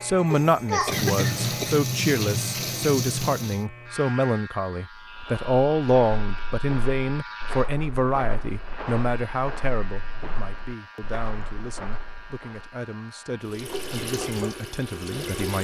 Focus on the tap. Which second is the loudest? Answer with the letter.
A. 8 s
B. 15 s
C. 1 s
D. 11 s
C.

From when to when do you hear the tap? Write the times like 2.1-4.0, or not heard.
0.0-3.6, 13.4-15.5.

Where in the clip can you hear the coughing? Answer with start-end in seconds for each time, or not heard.
0.8-1.8.